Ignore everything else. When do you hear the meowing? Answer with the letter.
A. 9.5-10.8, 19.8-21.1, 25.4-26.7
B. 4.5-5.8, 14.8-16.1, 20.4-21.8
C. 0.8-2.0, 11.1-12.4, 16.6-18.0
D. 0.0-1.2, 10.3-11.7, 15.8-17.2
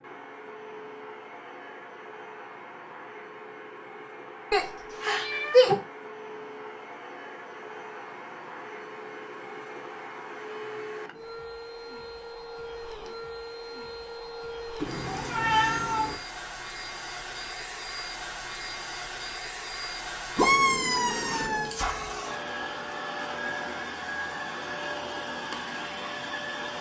B.